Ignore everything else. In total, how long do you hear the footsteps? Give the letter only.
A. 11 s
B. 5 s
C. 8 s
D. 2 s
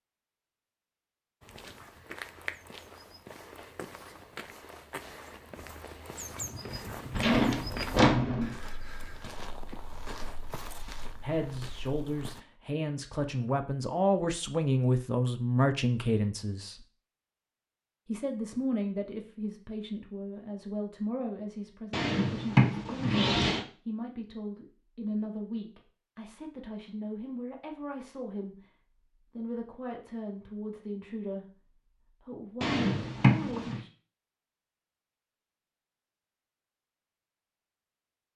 A.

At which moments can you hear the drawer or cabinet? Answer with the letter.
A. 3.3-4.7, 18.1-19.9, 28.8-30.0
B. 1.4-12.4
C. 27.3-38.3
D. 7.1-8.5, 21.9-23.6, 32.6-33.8
D.